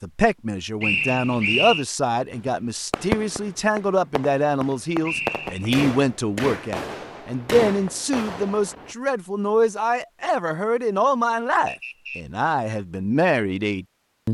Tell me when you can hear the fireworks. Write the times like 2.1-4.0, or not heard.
2.4-8.9.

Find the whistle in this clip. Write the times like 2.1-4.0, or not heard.
0.8-1.9, 5.0-5.7, 11.7-12.2.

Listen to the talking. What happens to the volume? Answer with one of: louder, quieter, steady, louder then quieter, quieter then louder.
steady.